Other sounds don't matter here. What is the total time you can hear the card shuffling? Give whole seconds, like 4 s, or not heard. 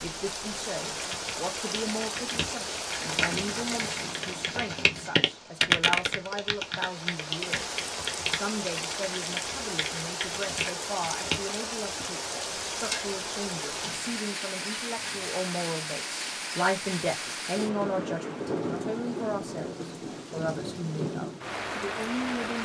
4 s.